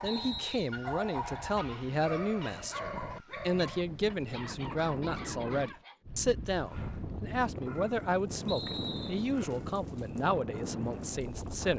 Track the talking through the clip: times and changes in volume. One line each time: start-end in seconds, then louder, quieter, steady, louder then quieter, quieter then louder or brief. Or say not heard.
0.0-11.7 steady.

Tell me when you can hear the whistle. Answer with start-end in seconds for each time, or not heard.
0.1-0.7, 8.4-9.3.